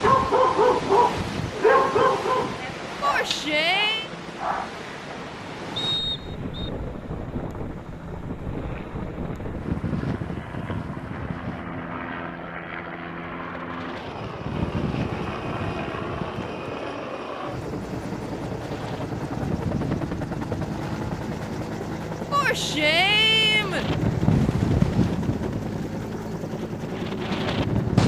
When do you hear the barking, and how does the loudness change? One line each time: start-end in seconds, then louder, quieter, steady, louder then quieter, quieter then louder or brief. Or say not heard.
0.0-4.8 quieter.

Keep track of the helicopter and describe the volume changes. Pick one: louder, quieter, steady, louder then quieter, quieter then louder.
louder.